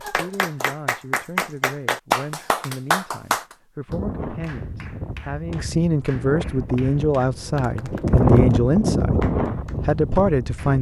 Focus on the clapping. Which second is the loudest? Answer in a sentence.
The loudest moment of the clapping is at 2 seconds.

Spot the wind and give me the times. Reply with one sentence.
You can hear the wind from 3.9 to 10.7 s.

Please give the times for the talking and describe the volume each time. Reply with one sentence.
The talking can be heard from 0.0 to 10.7 s, getting louder.